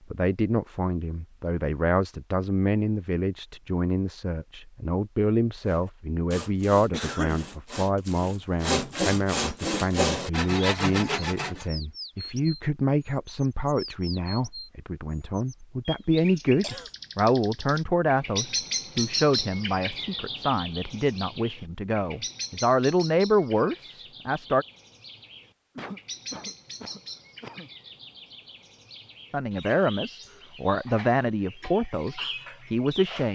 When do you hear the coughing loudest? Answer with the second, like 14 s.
7 s.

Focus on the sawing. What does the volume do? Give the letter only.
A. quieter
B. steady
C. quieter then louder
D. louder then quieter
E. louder
E.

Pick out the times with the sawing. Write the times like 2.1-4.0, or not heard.
5.6-11.7.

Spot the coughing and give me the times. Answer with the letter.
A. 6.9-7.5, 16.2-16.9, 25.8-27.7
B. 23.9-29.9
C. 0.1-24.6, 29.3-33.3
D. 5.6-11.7
A.